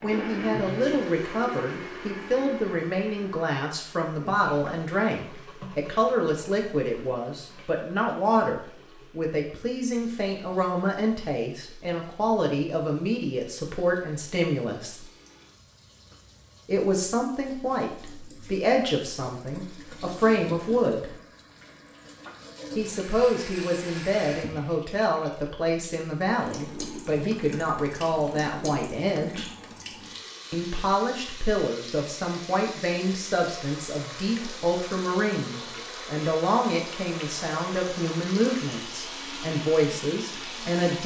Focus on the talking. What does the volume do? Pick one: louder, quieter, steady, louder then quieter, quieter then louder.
steady.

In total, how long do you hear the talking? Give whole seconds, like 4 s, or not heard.
37 s.